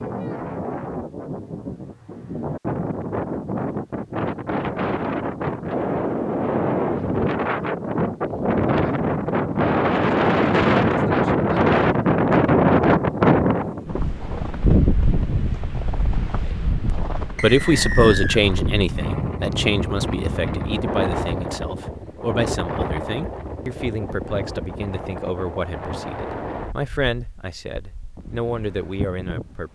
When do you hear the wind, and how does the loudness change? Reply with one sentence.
The wind can be heard from 0.0 to 29.6 s, getting louder then quieter.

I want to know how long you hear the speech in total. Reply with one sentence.
The speech can be heard for 12 seconds in total.